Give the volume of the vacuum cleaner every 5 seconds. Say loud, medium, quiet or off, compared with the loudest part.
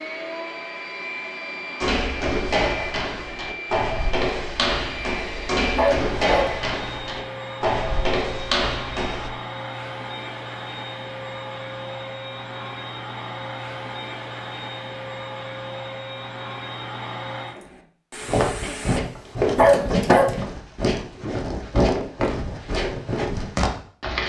loud, loud, loud, loud, off.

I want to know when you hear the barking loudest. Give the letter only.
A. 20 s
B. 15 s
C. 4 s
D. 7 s
A.